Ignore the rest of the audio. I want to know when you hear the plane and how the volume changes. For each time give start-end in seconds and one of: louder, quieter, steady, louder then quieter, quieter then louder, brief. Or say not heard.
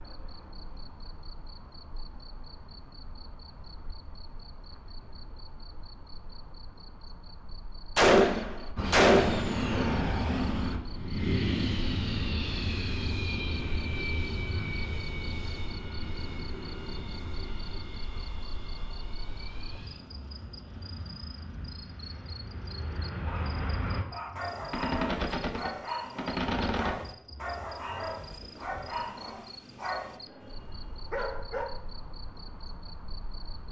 8.8-24.1 quieter then louder.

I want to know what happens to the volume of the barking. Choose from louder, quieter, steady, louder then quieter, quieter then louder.
steady.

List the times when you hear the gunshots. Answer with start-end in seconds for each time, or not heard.
8.0-9.6, 24.7-27.1, 28.3-29.3.